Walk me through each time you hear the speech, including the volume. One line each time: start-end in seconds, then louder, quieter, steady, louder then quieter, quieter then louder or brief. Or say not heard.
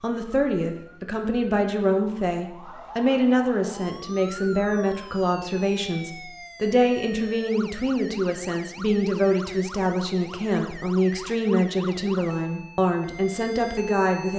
0.0-14.3 steady.